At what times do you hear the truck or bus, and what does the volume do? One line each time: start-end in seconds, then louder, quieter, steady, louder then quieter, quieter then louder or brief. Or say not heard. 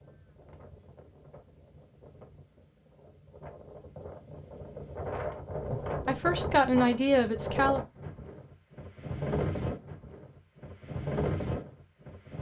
not heard.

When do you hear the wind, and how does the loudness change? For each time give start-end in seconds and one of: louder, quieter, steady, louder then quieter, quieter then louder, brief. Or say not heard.
0.0-12.3 louder.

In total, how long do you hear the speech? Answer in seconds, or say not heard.
2 s.